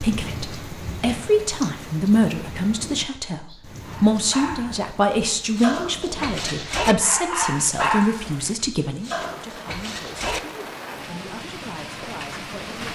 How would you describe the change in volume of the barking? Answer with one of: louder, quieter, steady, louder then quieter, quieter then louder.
louder then quieter.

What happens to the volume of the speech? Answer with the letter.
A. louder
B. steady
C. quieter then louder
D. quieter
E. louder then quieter
D.